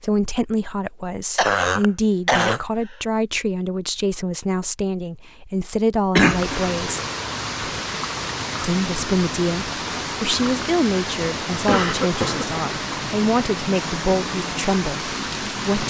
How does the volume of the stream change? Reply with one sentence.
The volume of the stream stays about the same.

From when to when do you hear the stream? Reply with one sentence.
You can hear the stream from 6.2 to 15.8 s.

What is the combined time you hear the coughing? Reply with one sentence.
The coughing can be heard for 3 seconds in total.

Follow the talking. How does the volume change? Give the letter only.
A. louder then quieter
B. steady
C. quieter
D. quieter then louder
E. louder
B.